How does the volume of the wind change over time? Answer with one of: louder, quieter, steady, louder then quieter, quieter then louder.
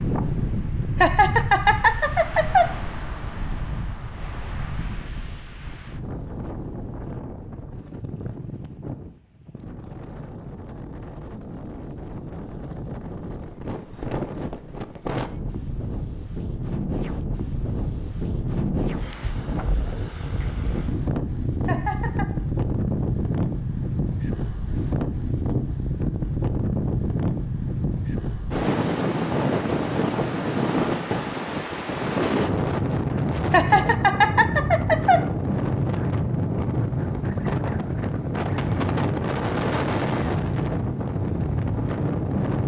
louder.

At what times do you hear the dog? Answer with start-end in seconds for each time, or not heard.
not heard.